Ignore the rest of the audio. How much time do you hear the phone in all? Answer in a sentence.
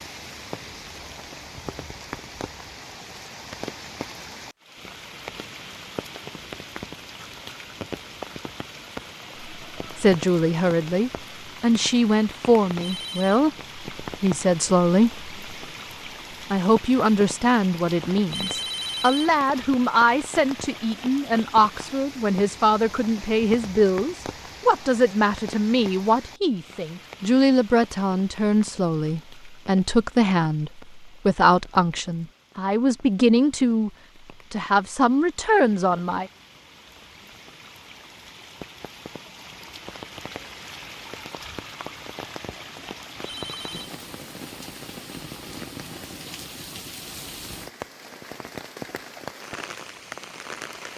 You can hear the phone for 2 seconds altogether.